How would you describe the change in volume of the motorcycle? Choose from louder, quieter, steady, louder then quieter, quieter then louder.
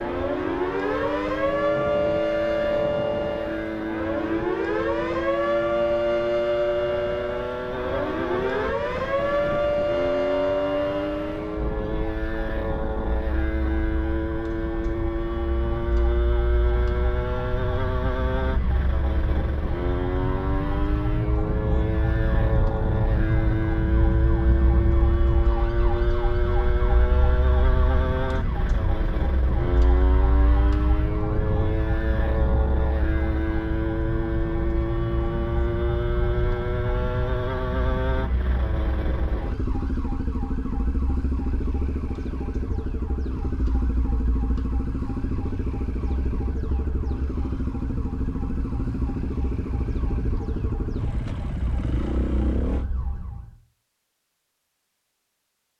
steady.